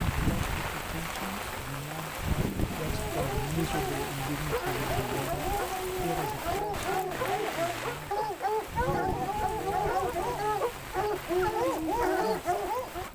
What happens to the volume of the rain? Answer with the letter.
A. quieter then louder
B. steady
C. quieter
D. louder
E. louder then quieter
C.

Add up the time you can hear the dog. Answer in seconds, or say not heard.
10 s.